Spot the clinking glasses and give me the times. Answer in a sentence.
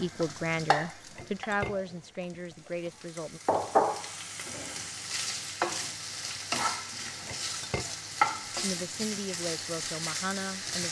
You can hear the clinking glasses from 0.8 to 3.0 s and from 7.0 to 8.0 s.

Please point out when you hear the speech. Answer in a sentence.
The speech can be heard from 0.0 to 3.4 s and from 8.6 to 10.8 s.